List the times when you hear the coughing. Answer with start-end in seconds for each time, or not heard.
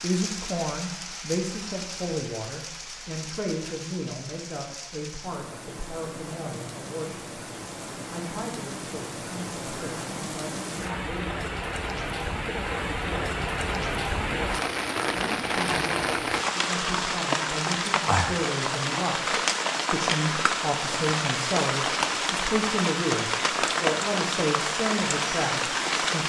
not heard.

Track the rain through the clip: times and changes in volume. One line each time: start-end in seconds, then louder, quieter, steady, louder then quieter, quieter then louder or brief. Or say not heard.
0.0-26.2 louder.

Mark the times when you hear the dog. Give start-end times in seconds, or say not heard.
not heard.